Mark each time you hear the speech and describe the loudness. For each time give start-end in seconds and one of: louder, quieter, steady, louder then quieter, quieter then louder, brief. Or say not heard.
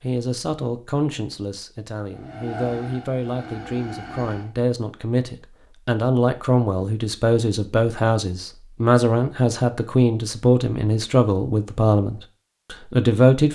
0.0-13.5 louder.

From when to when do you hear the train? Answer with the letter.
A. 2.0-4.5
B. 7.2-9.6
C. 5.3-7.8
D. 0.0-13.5
A.